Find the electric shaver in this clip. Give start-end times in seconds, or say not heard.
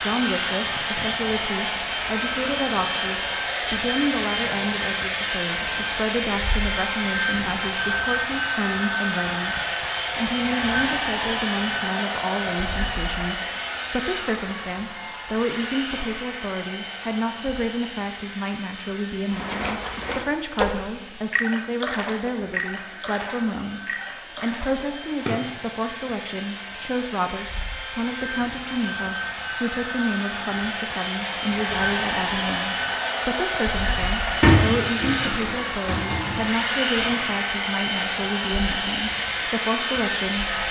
not heard.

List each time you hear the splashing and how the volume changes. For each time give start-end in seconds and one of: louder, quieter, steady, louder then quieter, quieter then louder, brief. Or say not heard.
19.2-25.6 quieter.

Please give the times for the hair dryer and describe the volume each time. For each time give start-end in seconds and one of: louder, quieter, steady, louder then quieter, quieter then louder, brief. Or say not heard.
0.0-40.6 quieter then louder.